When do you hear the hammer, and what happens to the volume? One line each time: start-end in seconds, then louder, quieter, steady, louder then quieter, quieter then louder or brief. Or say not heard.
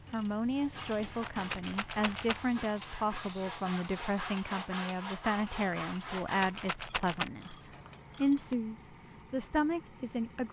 not heard.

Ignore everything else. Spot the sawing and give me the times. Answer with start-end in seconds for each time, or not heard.
0.5-6.8.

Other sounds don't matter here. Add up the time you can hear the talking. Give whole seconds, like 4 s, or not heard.
10 s.